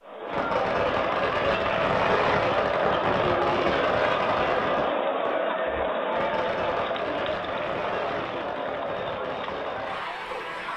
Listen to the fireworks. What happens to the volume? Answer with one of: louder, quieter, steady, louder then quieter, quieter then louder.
quieter.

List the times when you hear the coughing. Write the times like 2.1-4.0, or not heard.
not heard.